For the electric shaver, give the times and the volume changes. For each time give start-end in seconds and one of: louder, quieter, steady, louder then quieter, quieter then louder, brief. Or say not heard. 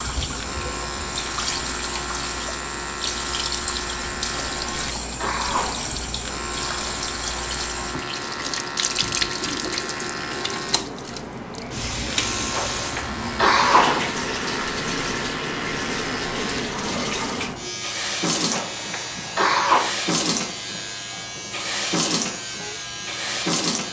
0.0-23.8 steady.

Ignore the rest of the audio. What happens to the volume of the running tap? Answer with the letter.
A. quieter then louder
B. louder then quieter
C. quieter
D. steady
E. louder
D.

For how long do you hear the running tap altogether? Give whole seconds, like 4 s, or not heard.
24 s.